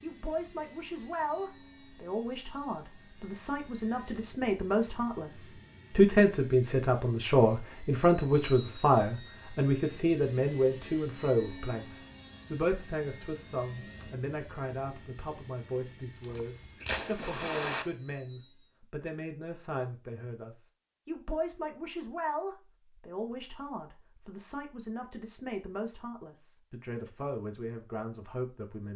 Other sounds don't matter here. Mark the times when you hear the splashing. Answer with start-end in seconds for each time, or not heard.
16.2-17.9.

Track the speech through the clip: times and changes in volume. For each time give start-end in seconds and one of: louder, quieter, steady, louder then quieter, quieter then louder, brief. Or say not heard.
0.0-28.9 louder then quieter.